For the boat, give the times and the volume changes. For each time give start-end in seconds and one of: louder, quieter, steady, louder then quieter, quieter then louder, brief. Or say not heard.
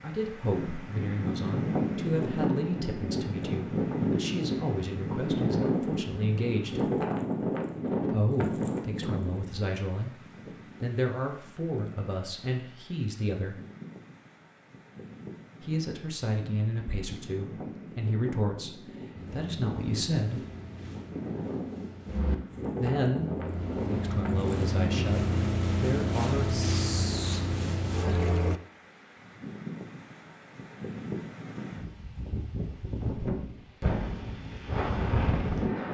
19.1-28.6 louder.